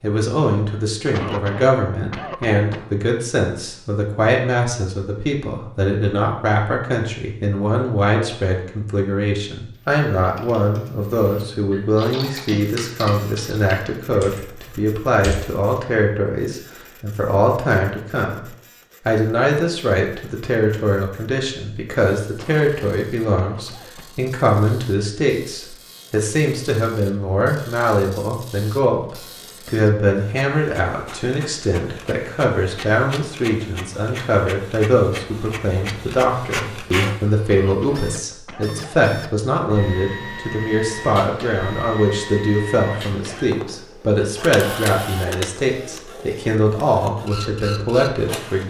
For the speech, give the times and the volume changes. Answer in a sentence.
You can hear the speech from 0.0 to 48.6 s, at a steady volume.